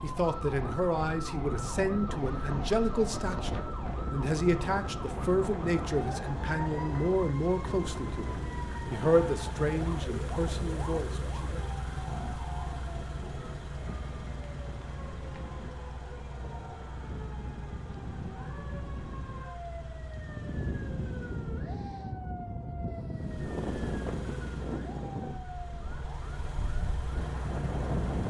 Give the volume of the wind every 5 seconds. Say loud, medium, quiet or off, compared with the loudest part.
loud, loud, medium, medium, loud, loud.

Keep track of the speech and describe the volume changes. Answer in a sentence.
The volume of the speech stays about the same.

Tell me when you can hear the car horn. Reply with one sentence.
The car horn can't be heard in this clip.